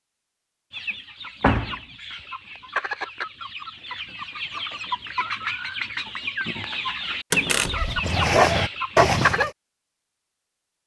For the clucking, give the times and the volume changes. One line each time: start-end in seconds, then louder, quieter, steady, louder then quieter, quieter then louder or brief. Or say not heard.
0.7-9.4 louder.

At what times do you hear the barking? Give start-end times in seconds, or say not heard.
7.7-9.5.